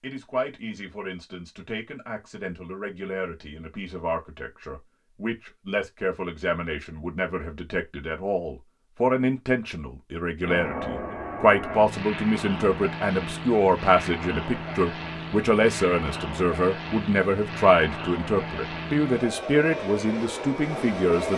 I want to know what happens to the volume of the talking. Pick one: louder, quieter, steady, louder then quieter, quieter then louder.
louder.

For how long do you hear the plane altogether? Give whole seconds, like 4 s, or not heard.
11 s.